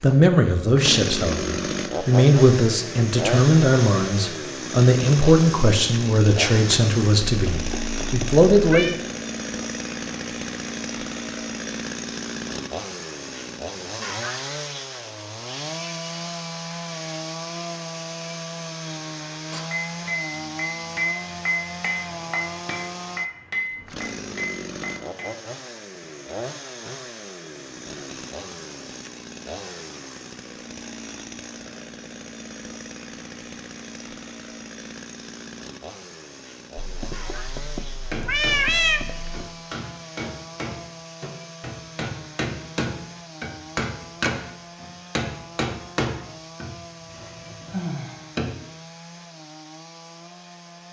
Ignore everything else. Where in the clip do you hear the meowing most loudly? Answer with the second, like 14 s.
39 s.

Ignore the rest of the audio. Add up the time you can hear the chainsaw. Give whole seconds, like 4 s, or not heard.
51 s.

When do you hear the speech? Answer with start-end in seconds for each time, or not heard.
0.0-8.9.